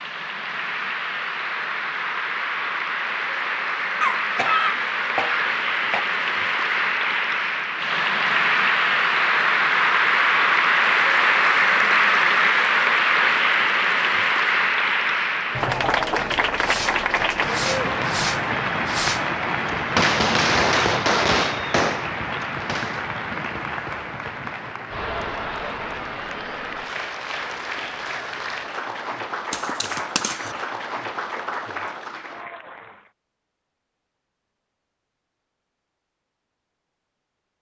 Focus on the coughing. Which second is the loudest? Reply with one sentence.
The volume of the coughing peaks at 5 seconds.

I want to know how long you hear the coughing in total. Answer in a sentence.
You can hear the coughing for 3 seconds altogether.